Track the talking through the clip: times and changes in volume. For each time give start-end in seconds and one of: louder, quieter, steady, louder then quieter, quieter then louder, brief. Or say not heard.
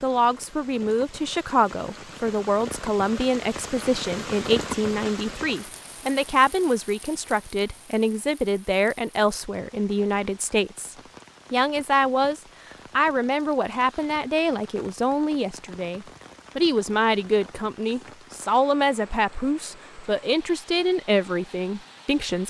0.0-22.4 steady.